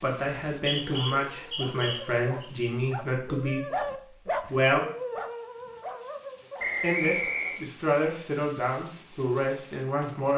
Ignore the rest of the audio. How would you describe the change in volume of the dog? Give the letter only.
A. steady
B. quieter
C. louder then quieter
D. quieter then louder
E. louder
C.